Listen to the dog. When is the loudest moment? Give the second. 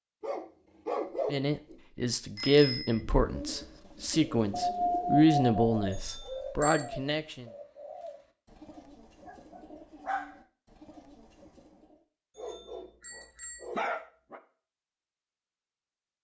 5 s.